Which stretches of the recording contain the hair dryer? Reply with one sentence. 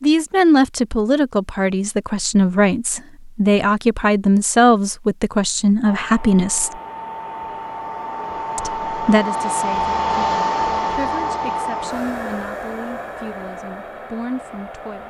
You can hear the hair dryer from 5.8 to 15.0 s.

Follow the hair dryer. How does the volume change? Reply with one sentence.
The volume of the hair dryer goes up, then down.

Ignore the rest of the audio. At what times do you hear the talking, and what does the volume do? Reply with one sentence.
You can hear the talking from 0.0 to 6.7 s, at a steady volume; and from 8.6 to 15.0 s, getting quieter.